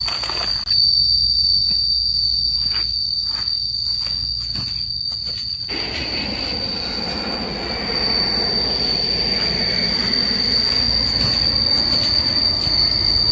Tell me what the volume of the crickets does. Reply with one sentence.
The volume of the crickets goes down, then up.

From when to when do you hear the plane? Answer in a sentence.
The plane can be heard from 5.7 to 13.2 s.